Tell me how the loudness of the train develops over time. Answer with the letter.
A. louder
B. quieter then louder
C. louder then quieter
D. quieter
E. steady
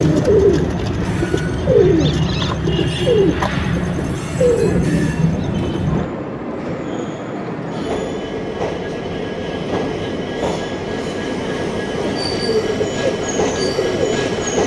A.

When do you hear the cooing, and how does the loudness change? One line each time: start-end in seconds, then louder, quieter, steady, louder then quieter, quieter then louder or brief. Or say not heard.
0.0-6.1 steady
11.9-14.4 brief.